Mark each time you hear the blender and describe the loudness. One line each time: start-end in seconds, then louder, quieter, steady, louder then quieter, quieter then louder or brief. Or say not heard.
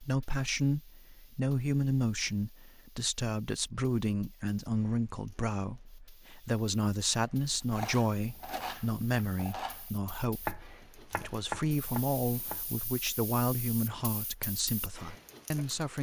not heard.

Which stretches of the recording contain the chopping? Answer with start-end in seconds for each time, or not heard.
7.7-13.1.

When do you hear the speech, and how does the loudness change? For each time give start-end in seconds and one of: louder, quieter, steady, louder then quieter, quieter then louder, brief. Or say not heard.
0.0-15.9 steady.